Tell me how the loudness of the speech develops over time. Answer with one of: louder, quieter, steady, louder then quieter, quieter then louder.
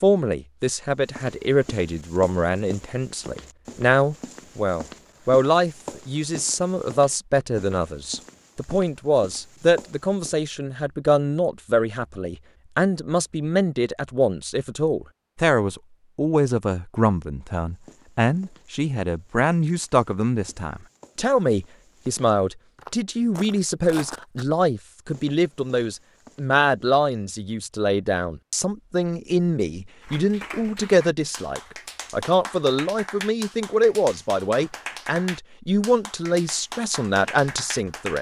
steady.